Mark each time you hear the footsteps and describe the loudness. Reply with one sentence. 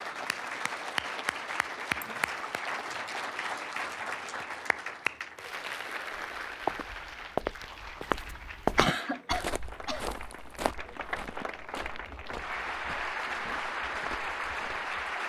You can hear the footsteps from 6.1 to 14.9 s, getting quieter.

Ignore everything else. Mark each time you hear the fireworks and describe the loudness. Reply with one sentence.
The fireworks can't be heard in this clip.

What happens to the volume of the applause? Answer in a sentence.
The volume of the applause goes down, then up.